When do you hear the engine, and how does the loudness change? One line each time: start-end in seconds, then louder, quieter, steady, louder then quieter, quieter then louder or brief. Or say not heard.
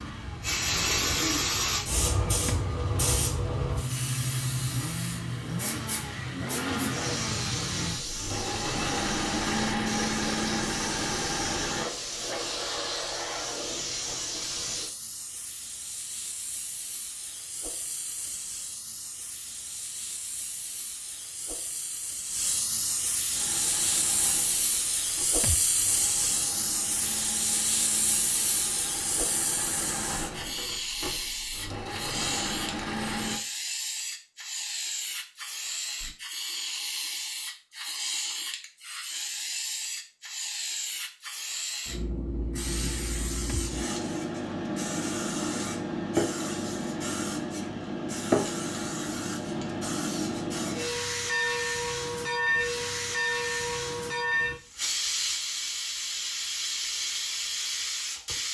0.0-11.8 louder
23.3-33.4 louder.